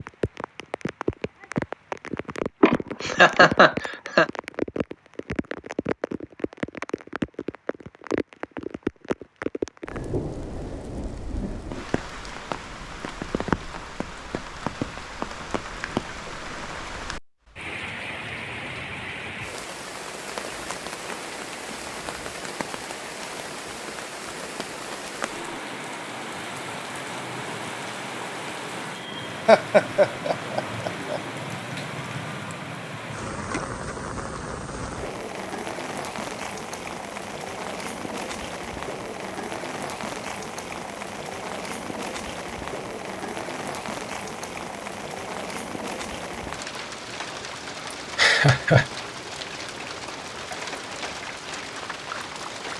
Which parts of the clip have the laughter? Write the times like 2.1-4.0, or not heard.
2.6-4.2, 29.4-31.2, 48.1-48.9.